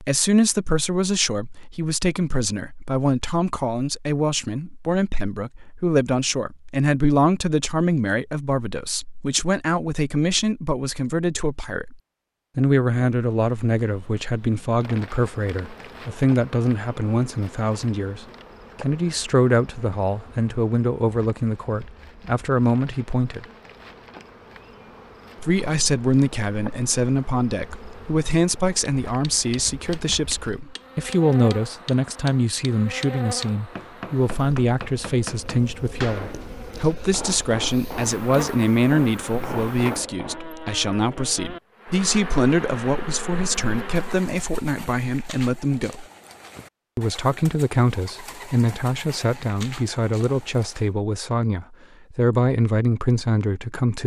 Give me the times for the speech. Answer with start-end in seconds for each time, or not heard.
0.0-11.9, 12.6-23.4, 25.4-46.0, 47.0-54.0.